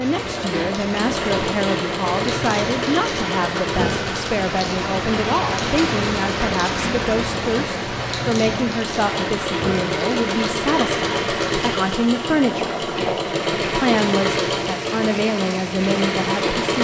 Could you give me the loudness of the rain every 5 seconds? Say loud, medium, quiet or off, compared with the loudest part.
loud, loud, medium, medium.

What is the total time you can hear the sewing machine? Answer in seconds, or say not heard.
17 s.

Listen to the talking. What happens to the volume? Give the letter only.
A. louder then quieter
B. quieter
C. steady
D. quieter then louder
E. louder
C.